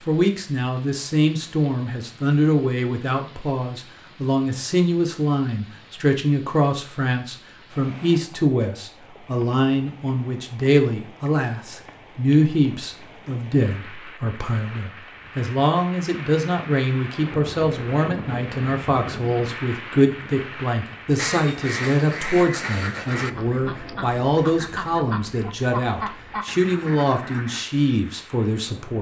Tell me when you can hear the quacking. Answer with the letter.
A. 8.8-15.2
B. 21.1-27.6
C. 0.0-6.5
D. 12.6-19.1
B.